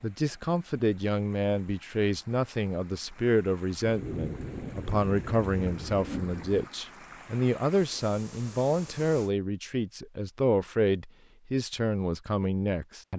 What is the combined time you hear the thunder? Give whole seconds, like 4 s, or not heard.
3 s.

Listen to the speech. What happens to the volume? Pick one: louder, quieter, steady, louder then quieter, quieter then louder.
steady.